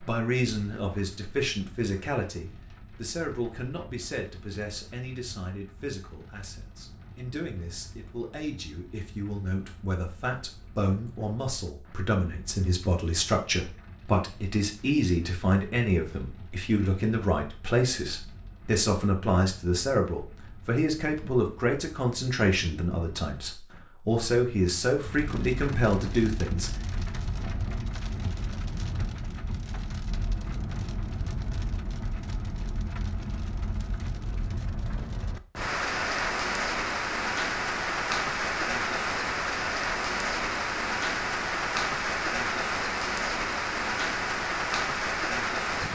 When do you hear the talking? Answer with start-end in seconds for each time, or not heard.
0.0-26.8.